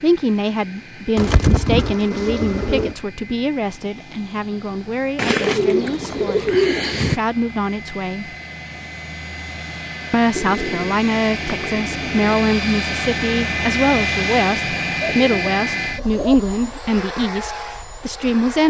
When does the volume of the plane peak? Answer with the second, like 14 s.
14 s.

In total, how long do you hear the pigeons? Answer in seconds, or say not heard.
7 s.